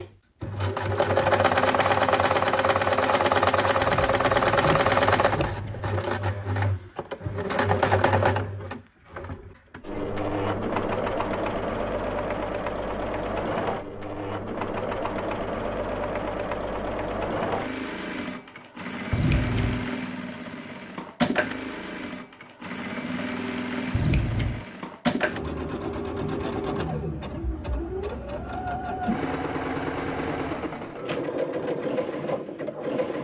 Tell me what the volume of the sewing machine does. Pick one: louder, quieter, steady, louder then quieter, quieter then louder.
quieter.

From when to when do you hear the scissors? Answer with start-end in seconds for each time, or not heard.
3.8-5.8, 19.1-19.9, 23.9-24.6.